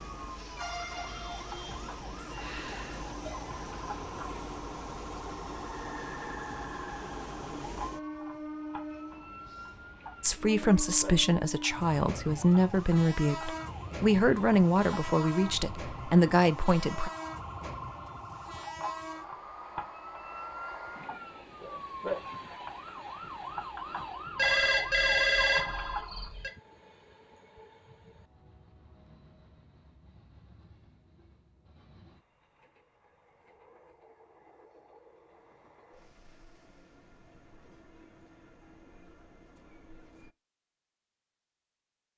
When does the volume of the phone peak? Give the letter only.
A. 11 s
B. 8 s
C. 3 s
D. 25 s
D.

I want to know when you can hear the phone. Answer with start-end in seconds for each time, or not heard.
2.4-3.4, 24.4-26.5.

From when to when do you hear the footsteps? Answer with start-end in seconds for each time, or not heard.
not heard.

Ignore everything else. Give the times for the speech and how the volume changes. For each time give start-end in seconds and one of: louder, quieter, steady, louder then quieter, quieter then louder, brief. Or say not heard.
10.2-17.1 steady.